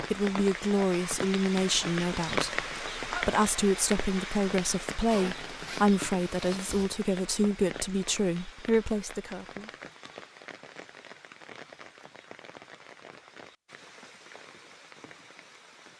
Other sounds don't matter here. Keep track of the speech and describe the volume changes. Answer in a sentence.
The loudness of the speech stays about the same.